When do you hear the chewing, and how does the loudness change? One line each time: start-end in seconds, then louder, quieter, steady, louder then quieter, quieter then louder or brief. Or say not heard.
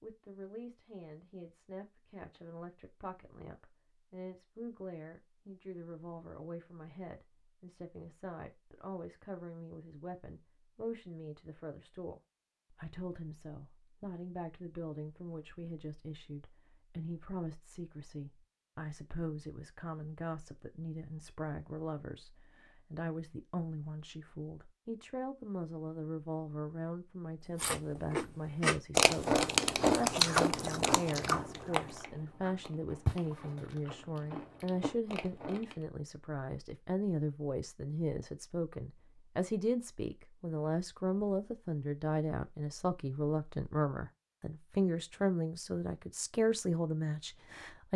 27.6-35.9 quieter.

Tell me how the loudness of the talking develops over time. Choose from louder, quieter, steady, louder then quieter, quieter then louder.
louder.